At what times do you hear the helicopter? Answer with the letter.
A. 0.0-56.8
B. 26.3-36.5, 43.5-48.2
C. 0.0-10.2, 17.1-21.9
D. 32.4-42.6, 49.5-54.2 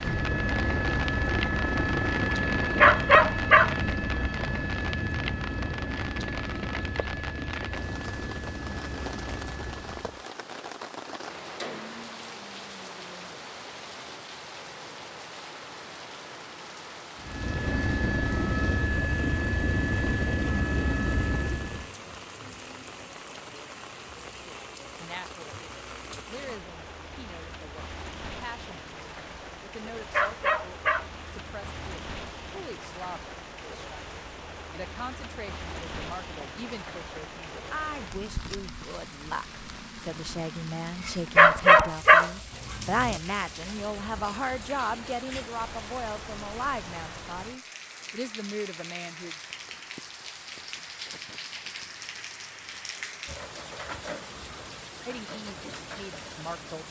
C.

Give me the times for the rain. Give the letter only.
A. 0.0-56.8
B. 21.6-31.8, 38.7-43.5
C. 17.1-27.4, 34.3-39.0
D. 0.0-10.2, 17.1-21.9
A.